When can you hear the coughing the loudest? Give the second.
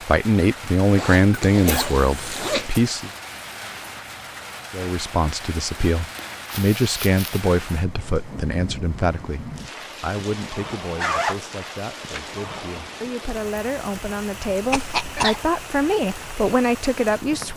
15 s.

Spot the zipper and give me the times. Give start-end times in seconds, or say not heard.
0.9-2.8, 10.9-12.2.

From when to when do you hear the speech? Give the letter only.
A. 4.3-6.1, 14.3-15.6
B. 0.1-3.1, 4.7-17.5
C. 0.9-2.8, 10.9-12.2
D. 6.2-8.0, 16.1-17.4
B.